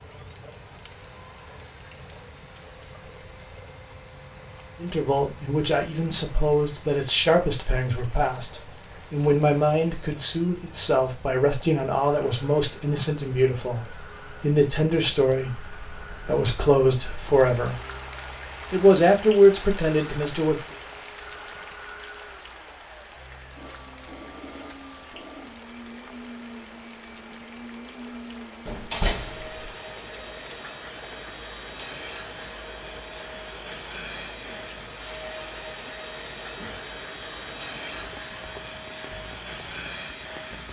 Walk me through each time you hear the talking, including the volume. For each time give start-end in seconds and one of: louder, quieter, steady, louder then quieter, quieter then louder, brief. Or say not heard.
4.8-17.8 steady
18.7-20.8 brief.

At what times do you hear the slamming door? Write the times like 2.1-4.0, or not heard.
28.6-29.6.